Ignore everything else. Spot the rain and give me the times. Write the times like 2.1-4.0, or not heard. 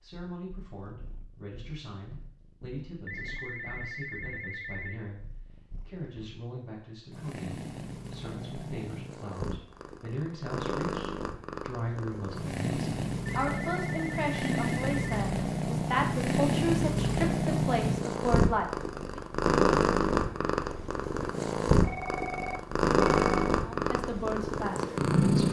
not heard.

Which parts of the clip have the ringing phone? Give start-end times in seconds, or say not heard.
3.0-5.0, 13.2-15.1, 21.8-23.6.